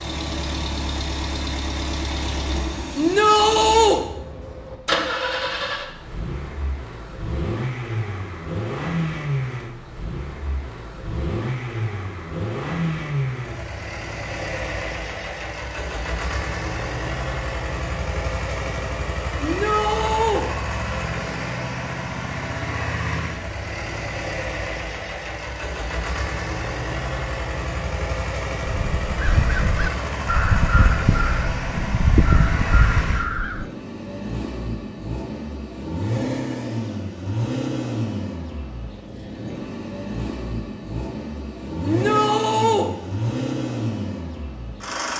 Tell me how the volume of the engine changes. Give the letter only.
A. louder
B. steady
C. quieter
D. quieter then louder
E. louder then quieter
B.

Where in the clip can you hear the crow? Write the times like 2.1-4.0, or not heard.
28.6-33.7.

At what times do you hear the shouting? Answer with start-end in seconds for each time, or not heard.
3.0-4.0, 19.4-20.4, 41.8-42.9.